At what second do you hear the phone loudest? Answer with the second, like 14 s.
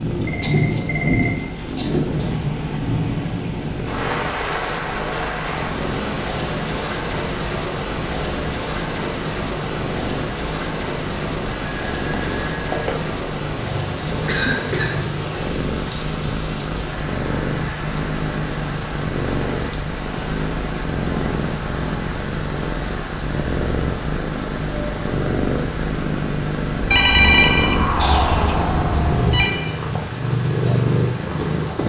27 s.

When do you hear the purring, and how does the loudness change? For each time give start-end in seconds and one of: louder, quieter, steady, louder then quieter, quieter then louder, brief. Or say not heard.
0.0-31.8 louder.